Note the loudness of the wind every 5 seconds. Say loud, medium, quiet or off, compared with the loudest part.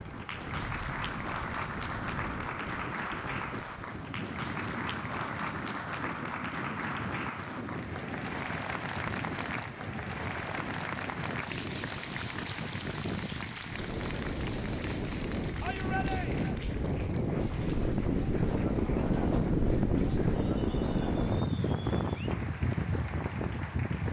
medium, medium, medium, loud, loud.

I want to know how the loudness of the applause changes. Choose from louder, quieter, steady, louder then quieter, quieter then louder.
quieter.